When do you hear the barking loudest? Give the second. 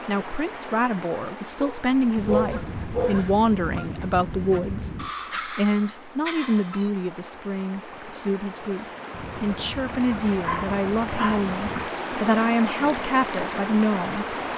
2 s.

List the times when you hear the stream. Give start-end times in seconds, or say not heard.
0.0-14.5.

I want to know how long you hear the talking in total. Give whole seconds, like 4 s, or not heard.
14 s.